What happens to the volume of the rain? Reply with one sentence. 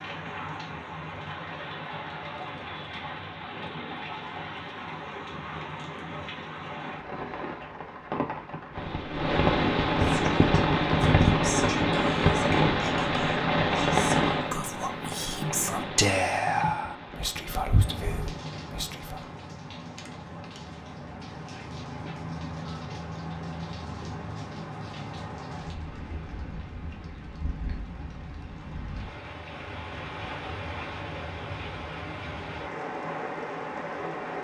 The loudness of the rain goes up, then down.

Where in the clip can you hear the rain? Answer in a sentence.
The rain can be heard from 0.0 to 34.3 s.